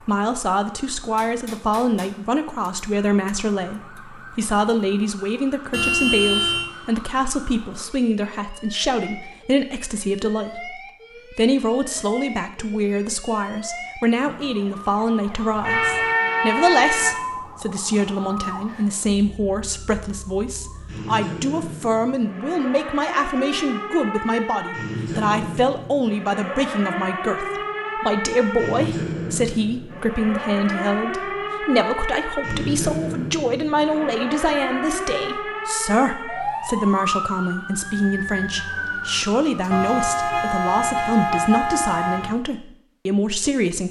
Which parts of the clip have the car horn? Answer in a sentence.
The car horn can be heard from 5.7 to 6.7 s, from 15.6 to 17.1 s and from 39.7 to 42.3 s.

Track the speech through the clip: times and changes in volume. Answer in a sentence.
You can hear the speech from 0.1 to 43.8 s, at a steady volume.